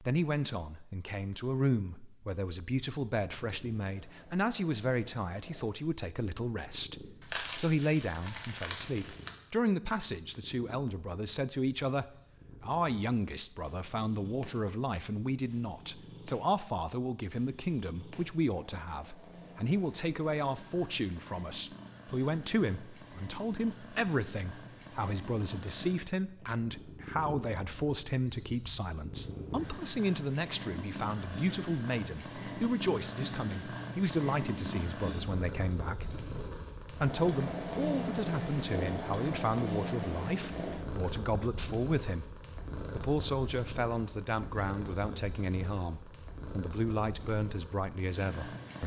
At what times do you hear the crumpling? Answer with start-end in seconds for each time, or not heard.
7.2-9.3.